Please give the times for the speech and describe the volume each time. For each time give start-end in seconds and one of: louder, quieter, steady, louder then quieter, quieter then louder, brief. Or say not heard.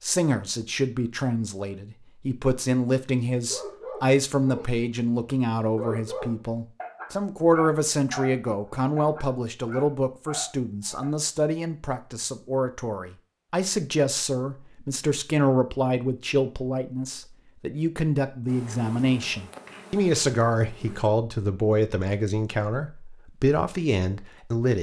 0.0-24.7 steady.